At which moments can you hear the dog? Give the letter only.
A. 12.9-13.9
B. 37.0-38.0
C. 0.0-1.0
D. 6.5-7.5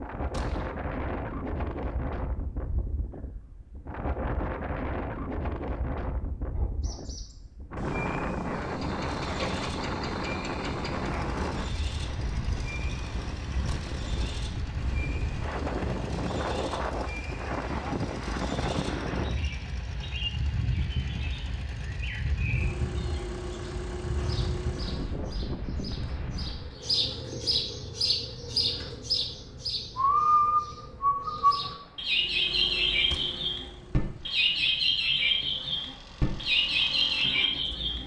D.